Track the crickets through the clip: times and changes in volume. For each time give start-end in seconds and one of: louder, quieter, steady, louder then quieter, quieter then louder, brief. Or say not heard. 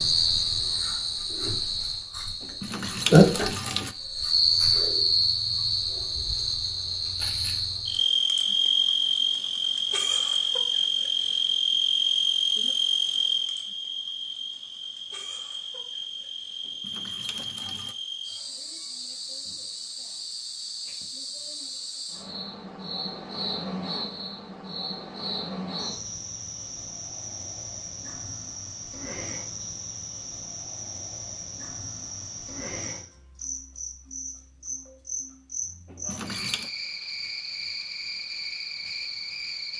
0.0-39.7 quieter.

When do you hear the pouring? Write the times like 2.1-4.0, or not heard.
2.4-4.0, 16.6-17.9, 35.9-36.7.